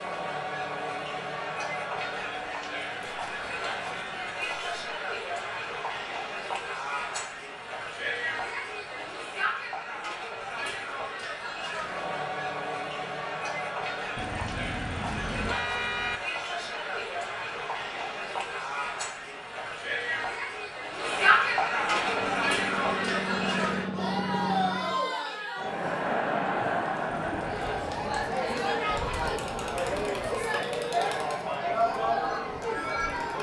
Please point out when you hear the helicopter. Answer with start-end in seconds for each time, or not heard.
21.9-25.1.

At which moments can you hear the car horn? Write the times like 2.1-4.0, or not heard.
3.0-4.8, 14.2-16.2, 27.1-28.4.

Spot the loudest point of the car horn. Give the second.
16 s.